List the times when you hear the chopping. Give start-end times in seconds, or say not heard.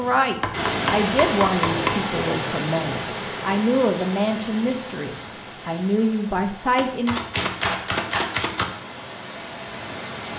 0.4-2.0, 6.8-8.7.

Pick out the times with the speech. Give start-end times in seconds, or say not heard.
0.0-7.2.